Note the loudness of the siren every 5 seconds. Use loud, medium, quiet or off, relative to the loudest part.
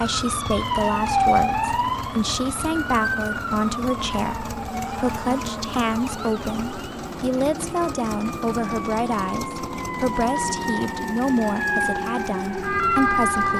loud, medium, loud.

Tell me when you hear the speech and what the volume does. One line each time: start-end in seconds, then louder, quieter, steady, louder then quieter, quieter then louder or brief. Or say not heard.
0.0-13.5 steady.